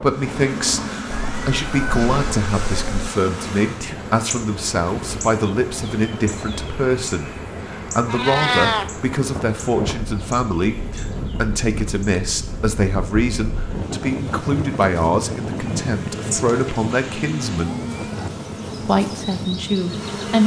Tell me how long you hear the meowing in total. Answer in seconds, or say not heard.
5 s.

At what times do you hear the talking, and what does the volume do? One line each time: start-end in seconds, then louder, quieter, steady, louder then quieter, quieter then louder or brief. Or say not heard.
0.0-17.7 steady
18.9-20.4 brief.